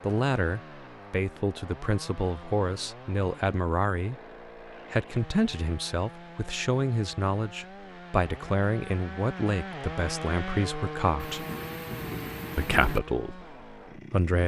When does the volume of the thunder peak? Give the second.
13 s.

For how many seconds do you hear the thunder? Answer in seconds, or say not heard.
2 s.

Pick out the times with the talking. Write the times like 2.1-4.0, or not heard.
0.0-4.2, 4.9-11.4, 12.6-14.4.